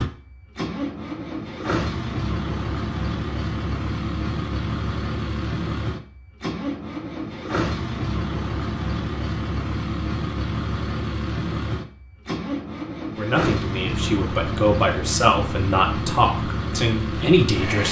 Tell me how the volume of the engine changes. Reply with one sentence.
The loudness of the engine stays about the same.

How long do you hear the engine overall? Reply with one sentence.
You can hear the engine for 18 seconds altogether.